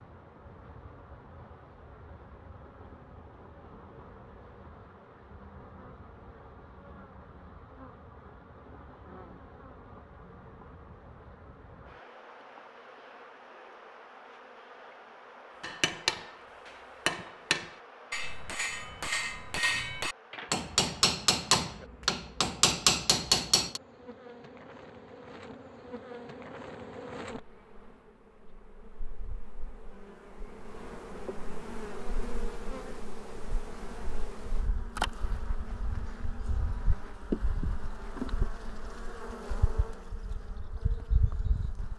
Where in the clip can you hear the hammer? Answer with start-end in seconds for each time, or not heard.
15.6-23.8.